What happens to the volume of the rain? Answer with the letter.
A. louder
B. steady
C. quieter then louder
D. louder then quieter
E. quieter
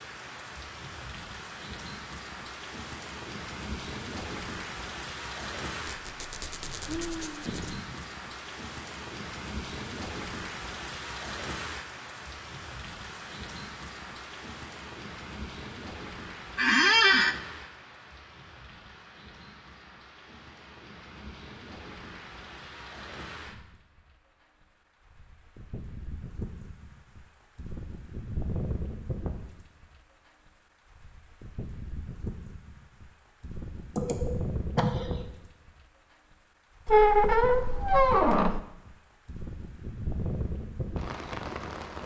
C.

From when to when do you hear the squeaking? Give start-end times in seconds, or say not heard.
5.8-7.8, 16.6-17.4, 36.9-38.6.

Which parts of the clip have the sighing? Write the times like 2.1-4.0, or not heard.
6.8-8.0, 34.0-35.2.